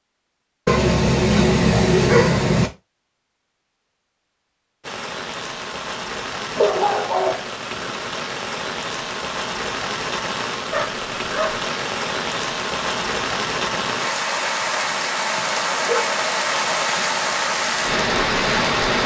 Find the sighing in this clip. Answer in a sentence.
The sighing can't be heard in this clip.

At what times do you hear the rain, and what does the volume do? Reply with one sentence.
The rain can be heard from 4.8 to 19.0 s, getting louder.